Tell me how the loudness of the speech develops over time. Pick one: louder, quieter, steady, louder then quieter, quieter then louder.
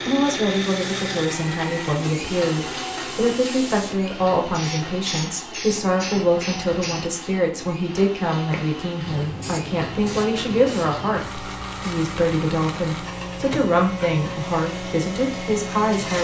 steady.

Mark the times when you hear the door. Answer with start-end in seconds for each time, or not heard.
not heard.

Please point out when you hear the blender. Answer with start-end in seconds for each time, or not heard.
0.0-16.1.